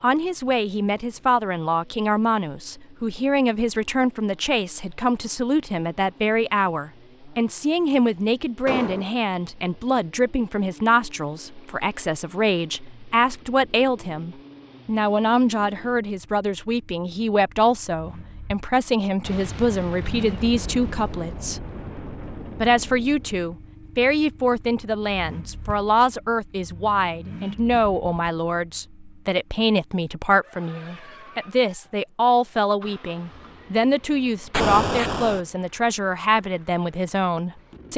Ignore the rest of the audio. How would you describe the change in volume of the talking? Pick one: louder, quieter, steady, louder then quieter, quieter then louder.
steady.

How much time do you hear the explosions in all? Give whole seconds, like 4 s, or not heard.
6 s.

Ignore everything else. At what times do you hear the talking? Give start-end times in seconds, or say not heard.
0.0-21.7, 22.6-37.9.